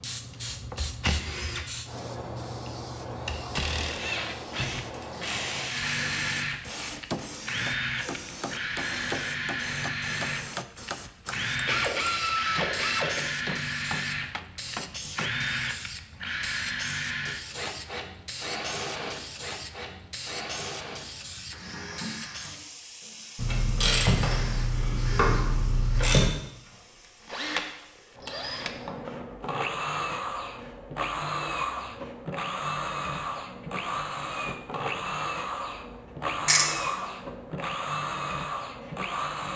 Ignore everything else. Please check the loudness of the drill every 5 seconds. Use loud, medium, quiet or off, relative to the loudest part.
loud, loud, loud, loud, medium, loud, loud, loud.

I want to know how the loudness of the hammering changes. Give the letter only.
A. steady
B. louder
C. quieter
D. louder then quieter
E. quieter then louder
A.